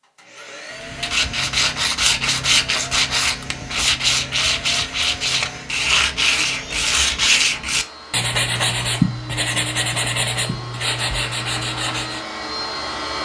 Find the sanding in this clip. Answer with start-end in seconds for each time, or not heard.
0.8-12.2.